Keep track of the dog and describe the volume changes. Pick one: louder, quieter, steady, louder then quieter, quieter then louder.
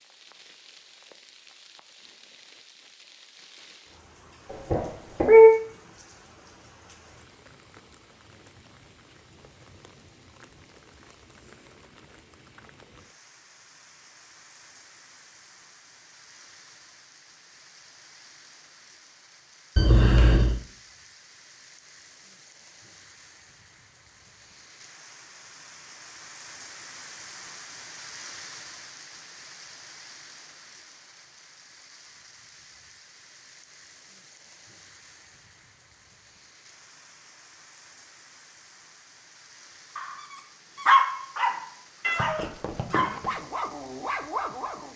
quieter.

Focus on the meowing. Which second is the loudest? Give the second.
5 s.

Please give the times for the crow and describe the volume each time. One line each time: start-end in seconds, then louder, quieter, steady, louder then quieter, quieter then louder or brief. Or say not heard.
not heard.